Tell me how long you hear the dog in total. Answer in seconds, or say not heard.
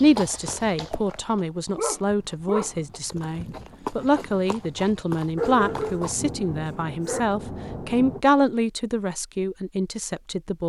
3 s.